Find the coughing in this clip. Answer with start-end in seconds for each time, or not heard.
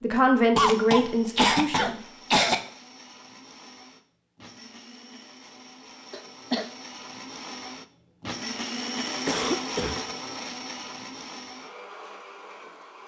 0.6-2.5, 6.1-6.7, 9.2-10.1.